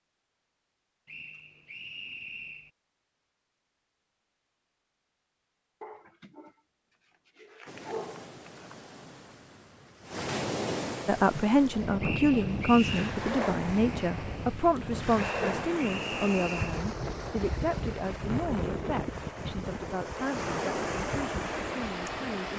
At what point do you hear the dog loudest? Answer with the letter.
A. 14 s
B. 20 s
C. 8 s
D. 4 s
C.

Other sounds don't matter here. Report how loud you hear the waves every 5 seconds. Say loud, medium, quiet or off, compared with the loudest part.
off, quiet, loud, loud, loud.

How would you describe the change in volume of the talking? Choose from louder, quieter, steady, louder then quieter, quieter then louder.
quieter.